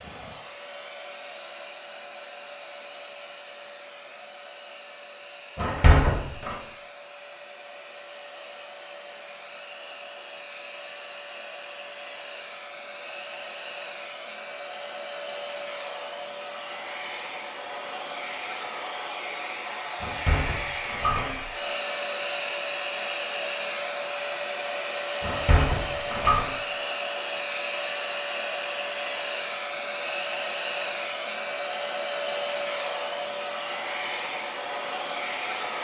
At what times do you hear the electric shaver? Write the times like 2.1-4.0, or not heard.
not heard.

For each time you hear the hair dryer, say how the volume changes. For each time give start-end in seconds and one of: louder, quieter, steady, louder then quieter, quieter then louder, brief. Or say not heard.
0.0-35.7 louder.